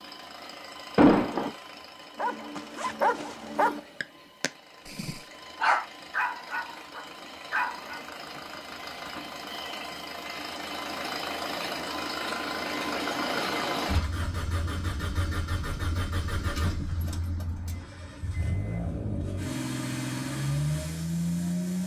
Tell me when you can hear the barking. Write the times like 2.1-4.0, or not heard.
2.1-8.0.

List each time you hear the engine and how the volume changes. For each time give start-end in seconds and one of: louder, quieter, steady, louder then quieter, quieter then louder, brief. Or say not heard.
0.0-21.8 louder.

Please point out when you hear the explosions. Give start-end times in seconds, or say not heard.
0.9-1.5.